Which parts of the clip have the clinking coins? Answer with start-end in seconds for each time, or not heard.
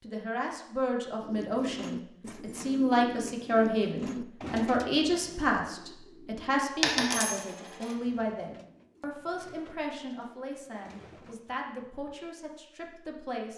6.8-8.0.